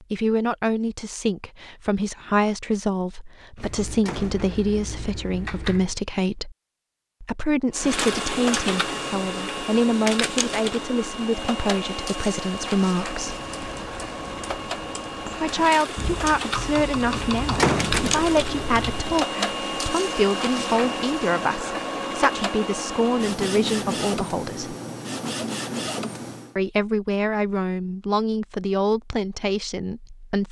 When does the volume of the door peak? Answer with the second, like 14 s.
18 s.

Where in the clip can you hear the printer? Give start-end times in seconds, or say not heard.
7.7-26.6.